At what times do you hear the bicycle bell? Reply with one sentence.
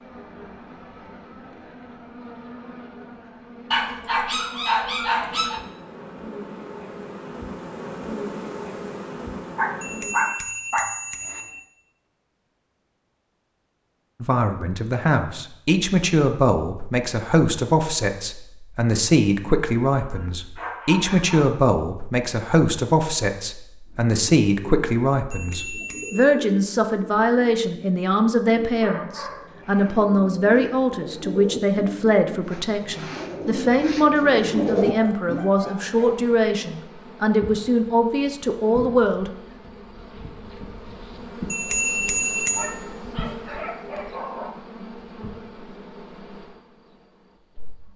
The bicycle bell can be heard from 9.8 to 11.6 s, from 25.3 to 26.3 s and from 41.5 to 42.8 s.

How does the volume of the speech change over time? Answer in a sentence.
The volume of the speech stays about the same.